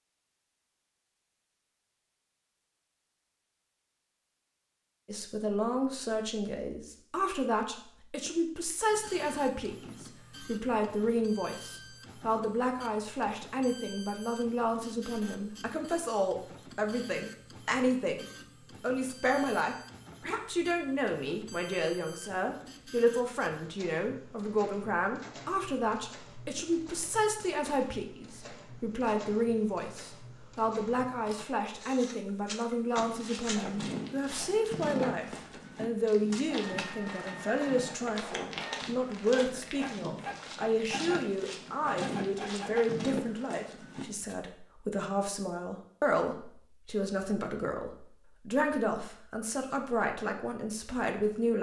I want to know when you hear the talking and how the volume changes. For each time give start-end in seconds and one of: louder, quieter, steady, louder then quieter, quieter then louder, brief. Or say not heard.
5.0-51.5 steady.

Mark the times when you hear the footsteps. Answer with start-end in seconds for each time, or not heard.
33.0-44.4.